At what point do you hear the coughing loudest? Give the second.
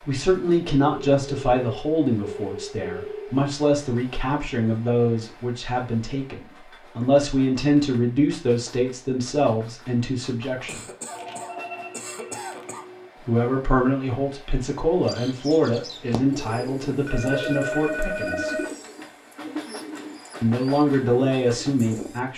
12 s.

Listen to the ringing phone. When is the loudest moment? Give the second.
18 s.